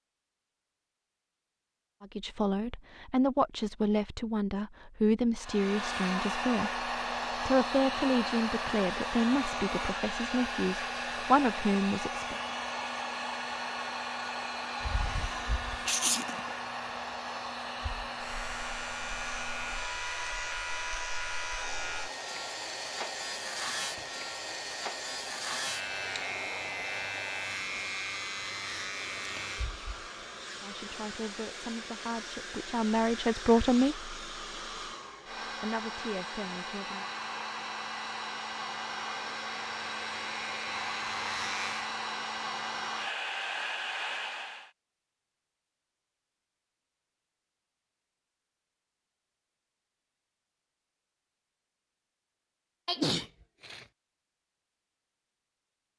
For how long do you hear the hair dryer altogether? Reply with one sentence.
You can hear the hair dryer for 39 seconds altogether.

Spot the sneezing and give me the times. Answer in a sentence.
You can hear the sneezing from 14.9 to 16.4 s and from 52.9 to 53.9 s.